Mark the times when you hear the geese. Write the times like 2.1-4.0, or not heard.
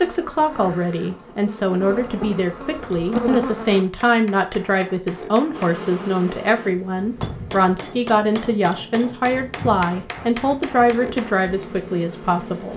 not heard.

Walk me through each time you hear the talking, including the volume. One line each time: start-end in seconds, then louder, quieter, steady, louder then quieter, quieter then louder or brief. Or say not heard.
0.0-12.7 steady.